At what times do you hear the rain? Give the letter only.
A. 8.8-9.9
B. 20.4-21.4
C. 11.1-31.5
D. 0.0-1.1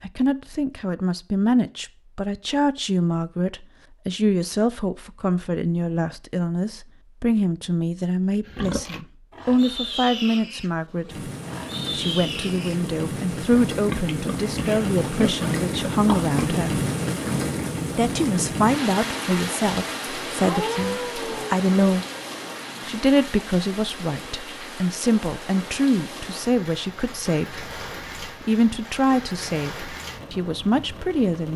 C.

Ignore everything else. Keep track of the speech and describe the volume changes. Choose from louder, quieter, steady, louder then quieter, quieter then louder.
steady.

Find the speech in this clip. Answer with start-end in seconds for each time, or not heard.
0.0-11.3, 11.9-16.8, 17.9-22.1, 22.9-31.5.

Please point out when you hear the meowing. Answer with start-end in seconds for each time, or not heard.
20.4-21.4.